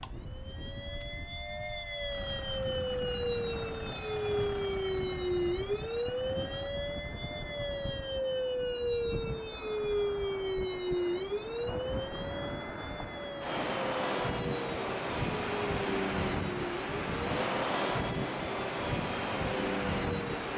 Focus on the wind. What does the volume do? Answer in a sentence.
The volume of the wind goes up.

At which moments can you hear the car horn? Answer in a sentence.
You can't hear the car horn here.